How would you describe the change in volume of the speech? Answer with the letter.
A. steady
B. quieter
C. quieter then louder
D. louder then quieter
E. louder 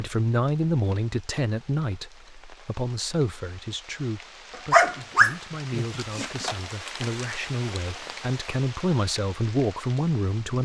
C.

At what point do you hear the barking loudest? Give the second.
5 s.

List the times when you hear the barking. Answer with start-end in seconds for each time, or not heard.
4.7-6.3.